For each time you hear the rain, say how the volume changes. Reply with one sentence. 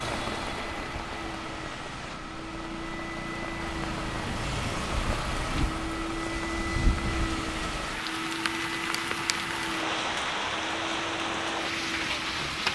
The rain can be heard from 0.0 to 12.7 s, getting louder.